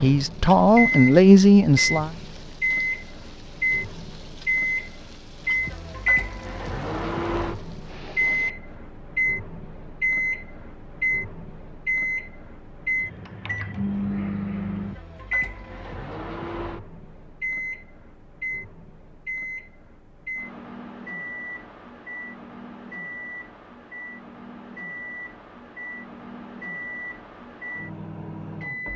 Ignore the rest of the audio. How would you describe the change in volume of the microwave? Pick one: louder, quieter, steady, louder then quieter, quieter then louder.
quieter.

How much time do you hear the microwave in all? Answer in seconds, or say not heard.
29 s.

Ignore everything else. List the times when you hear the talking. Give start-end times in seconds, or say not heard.
0.0-2.1.